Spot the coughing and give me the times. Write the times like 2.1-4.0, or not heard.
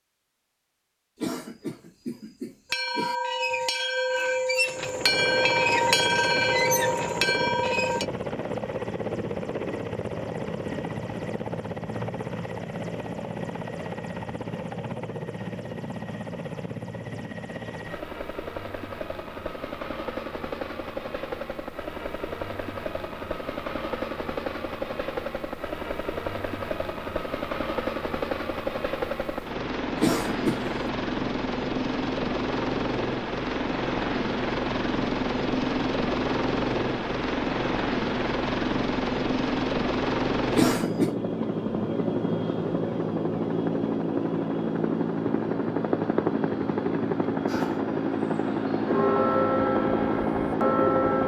1.1-3.1, 30.0-30.9, 40.5-41.1.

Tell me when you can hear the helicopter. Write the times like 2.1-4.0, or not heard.
4.7-51.2.